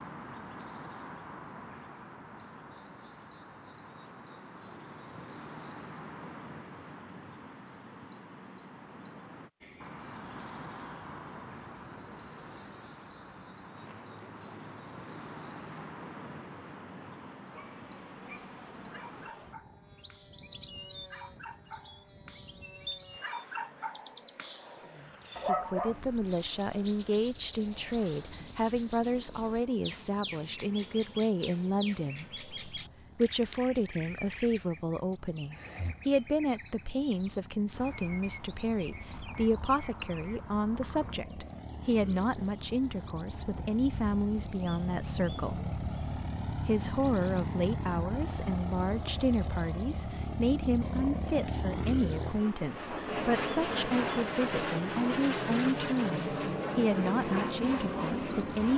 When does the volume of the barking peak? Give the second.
26 s.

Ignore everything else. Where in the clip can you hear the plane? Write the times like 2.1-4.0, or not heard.
9.6-58.7.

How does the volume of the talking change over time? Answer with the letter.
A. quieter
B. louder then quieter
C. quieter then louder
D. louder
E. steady
E.